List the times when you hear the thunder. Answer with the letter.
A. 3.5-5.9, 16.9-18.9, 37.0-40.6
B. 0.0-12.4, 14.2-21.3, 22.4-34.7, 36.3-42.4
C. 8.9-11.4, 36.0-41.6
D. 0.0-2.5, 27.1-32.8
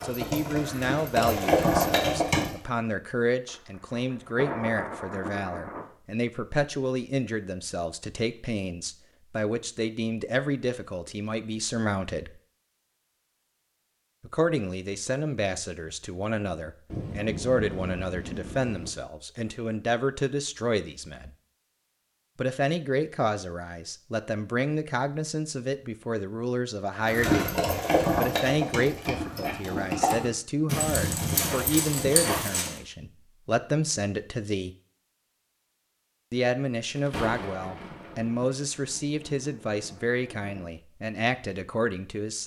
A.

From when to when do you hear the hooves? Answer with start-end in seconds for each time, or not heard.
0.0-2.5, 27.1-32.8.